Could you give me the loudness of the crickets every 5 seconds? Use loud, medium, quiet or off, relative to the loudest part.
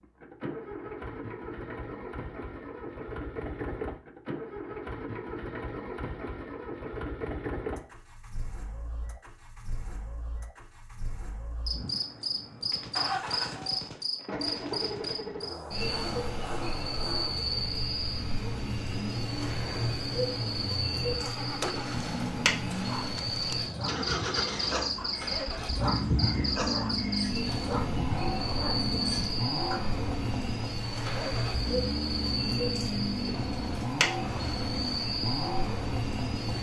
off, off, loud, loud, loud, loud, loud, loud.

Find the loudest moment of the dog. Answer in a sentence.
The loudest moment of the dog is at 26 seconds.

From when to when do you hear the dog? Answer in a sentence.
The dog can be heard from 22.6 to 29.8 s.